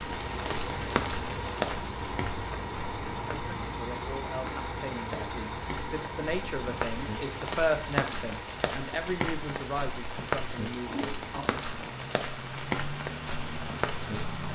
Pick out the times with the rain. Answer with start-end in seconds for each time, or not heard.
0.0-14.5.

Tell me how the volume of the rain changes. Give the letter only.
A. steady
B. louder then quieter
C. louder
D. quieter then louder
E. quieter
D.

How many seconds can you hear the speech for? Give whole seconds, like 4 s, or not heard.
8 s.